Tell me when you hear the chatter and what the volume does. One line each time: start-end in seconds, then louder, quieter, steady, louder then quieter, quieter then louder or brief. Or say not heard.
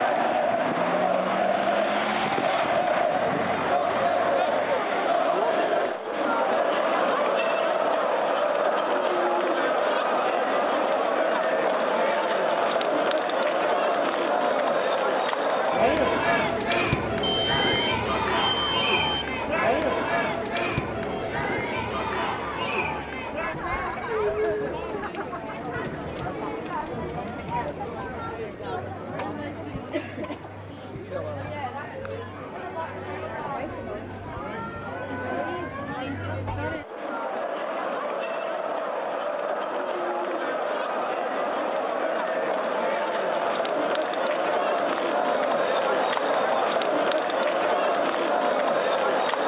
0.0-49.4 quieter then louder.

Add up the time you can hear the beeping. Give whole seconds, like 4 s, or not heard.
2 s.